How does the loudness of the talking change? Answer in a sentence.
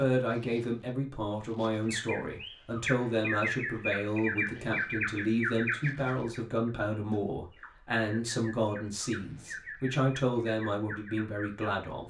The volume of the talking stays about the same.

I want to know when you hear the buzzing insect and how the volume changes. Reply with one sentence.
You can't hear the buzzing insect here.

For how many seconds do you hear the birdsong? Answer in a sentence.
You can hear the birdsong for 10 seconds altogether.